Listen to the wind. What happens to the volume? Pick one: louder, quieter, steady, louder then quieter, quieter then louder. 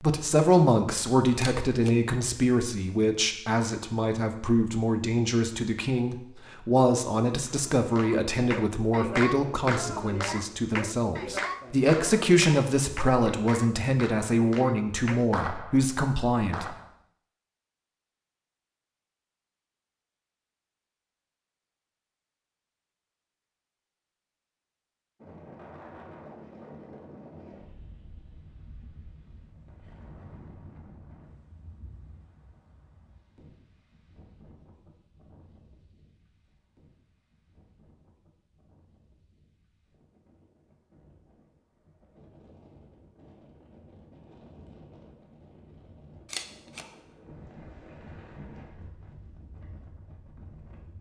quieter then louder.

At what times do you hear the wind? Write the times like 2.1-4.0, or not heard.
25.2-50.9.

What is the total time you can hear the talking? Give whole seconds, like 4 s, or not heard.
17 s.